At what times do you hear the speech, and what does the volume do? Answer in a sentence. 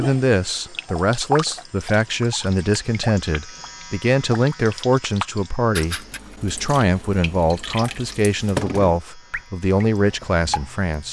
You can hear the speech from 0.0 to 11.0 s, at a steady volume.